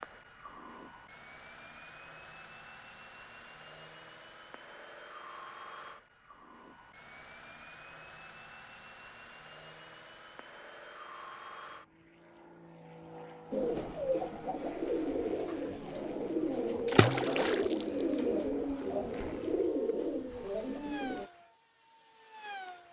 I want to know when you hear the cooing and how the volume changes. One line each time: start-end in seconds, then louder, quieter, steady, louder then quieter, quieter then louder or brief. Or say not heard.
13.5-21.3 steady.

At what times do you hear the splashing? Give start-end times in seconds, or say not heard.
16.9-18.1.